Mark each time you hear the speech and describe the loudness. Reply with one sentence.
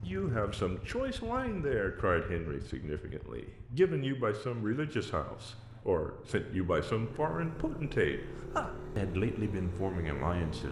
You can hear the speech from 0.0 to 10.6 s, at a steady volume.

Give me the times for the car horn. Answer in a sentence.
The car horn can't be heard in this clip.